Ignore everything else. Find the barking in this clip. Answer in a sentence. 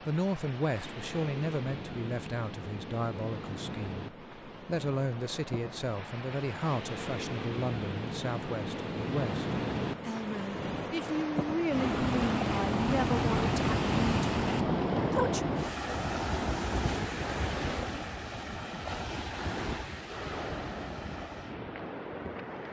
You can't hear the barking here.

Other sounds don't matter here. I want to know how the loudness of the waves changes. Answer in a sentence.
The loudness of the waves goes up, then down.